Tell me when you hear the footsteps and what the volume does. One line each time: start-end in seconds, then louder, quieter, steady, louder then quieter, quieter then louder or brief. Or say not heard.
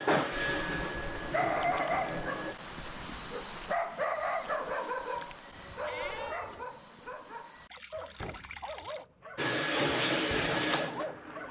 not heard.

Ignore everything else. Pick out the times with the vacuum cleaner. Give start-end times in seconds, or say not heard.
0.0-2.5, 9.3-11.4.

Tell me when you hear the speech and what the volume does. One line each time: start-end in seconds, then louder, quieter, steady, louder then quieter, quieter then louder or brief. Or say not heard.
not heard.